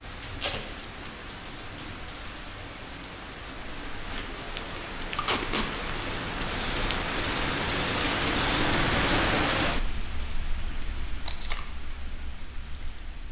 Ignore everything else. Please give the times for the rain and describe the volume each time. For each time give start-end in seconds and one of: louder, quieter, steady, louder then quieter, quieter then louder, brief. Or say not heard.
0.0-13.2 louder then quieter.